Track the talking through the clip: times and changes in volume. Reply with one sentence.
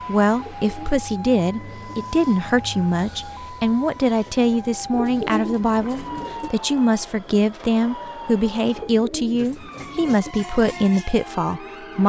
You can hear the talking from 0.1 to 12.0 s, at a steady volume.